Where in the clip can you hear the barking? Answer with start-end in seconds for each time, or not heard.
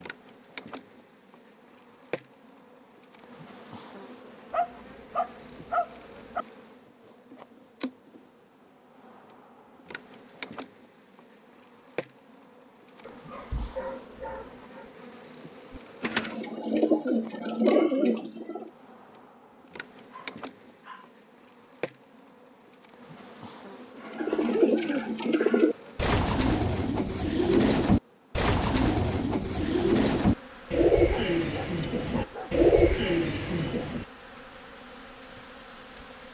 4.5-6.5, 13.1-14.8, 19.6-21.1, 31.1-32.6.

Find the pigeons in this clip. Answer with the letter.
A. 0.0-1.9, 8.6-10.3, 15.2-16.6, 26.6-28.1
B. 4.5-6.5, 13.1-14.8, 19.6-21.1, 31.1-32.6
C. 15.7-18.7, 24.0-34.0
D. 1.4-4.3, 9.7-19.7
C.